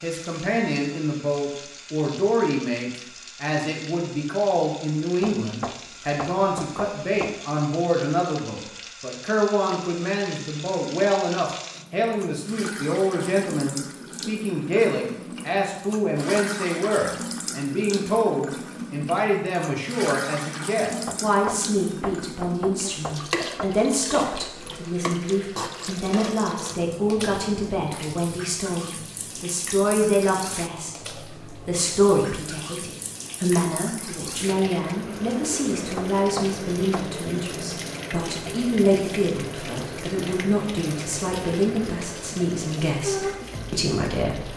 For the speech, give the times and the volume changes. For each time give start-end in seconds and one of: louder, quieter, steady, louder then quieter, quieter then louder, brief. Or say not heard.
0.0-44.5 steady.